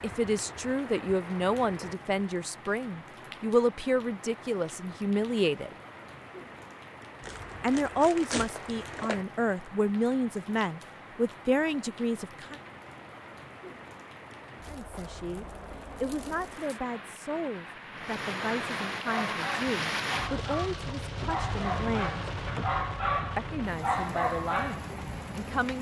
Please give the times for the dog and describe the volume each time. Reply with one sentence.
The dog can be heard from 19.0 to 25.0 s, getting louder.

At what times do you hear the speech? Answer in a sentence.
You can hear the speech from 0.0 to 5.8 s, from 7.6 to 12.6 s, from 14.7 to 22.3 s and from 23.4 to 25.7 s.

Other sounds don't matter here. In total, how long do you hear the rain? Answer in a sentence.
The rain can be heard for 26 seconds in total.